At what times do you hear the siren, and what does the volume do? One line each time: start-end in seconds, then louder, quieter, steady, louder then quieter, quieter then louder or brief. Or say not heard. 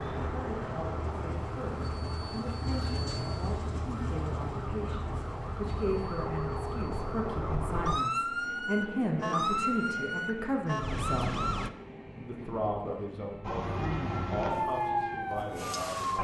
0.0-11.7 louder
13.4-16.2 brief.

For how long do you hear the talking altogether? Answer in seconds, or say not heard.
15 s.